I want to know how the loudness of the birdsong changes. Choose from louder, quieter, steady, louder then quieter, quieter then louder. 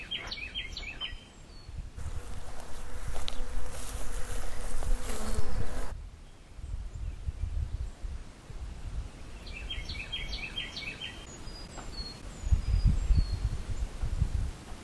quieter then louder.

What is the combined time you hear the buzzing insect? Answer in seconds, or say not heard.
4 s.